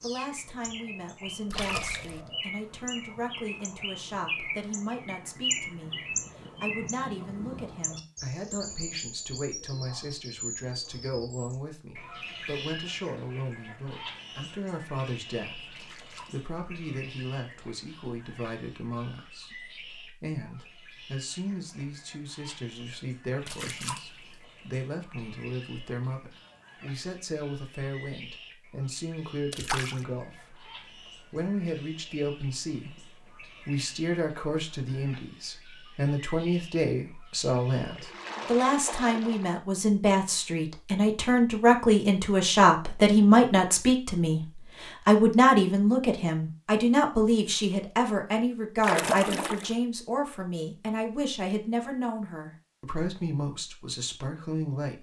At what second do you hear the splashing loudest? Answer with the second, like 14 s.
49 s.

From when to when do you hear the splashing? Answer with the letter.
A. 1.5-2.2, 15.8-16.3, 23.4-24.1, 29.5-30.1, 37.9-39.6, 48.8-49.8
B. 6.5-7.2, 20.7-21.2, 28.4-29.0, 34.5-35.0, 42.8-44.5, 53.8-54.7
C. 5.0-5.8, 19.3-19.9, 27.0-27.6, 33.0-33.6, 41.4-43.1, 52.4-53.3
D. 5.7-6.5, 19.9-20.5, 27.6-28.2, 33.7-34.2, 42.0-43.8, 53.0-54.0
A.